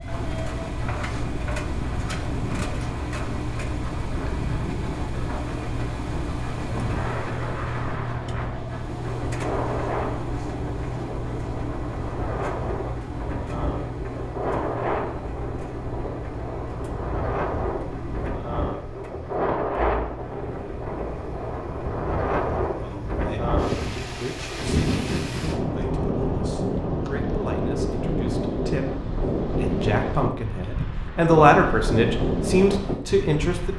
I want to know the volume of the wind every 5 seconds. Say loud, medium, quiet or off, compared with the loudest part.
medium, medium, medium, loud, loud, loud, loud.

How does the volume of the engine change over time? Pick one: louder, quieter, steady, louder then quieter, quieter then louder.
quieter.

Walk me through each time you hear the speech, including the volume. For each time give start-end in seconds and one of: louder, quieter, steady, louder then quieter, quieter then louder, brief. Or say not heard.
22.7-23.6 brief
24.1-33.7 louder.